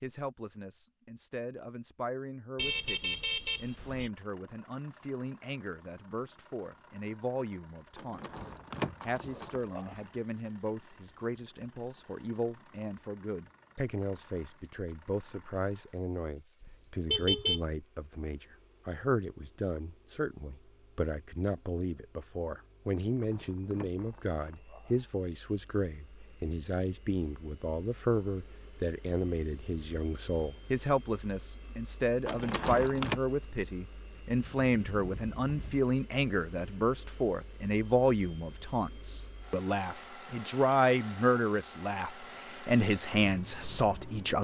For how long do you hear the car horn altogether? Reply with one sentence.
You can hear the car horn for 3 seconds altogether.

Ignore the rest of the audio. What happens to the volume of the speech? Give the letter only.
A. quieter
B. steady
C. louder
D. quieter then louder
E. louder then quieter
C.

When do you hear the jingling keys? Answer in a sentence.
You can hear the jingling keys from 8.0 to 10.1 s, from 22.9 to 25.1 s and from 32.2 to 33.2 s.